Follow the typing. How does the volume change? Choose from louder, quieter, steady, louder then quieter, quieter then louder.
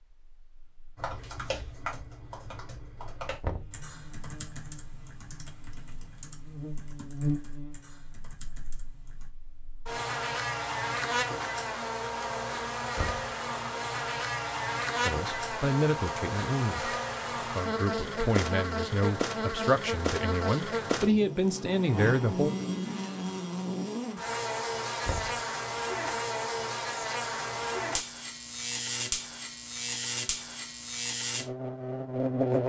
quieter.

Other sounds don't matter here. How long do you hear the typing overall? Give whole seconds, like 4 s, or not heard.
8 s.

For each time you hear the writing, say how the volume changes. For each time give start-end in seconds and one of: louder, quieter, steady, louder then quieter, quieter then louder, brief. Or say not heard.
not heard.